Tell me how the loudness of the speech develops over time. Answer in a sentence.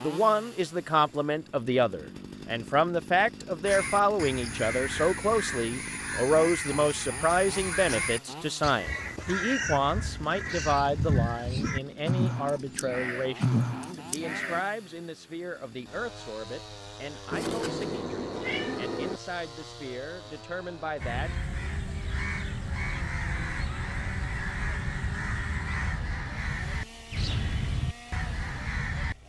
The loudness of the speech goes down.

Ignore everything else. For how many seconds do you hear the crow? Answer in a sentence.
You can hear the crow for 19 seconds altogether.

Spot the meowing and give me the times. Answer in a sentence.
You can hear the meowing from 17.3 to 19.2 s.